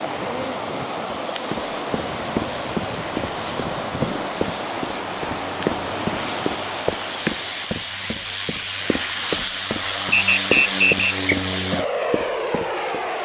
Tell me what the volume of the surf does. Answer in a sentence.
The loudness of the surf stays about the same.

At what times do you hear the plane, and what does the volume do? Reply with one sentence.
The plane can be heard from 0.2 to 13.2 s, getting louder.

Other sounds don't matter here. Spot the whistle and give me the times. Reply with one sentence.
The whistle can be heard from 10.1 to 11.3 s.